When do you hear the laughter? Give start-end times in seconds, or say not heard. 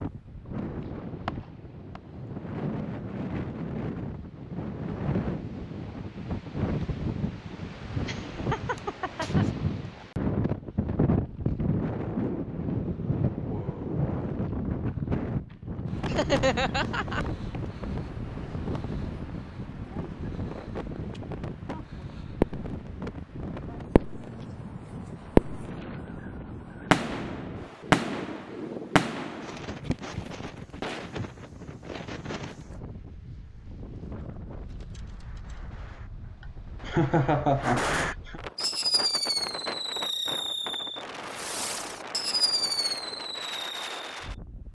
8.1-9.4, 16.1-17.2, 36.9-38.4.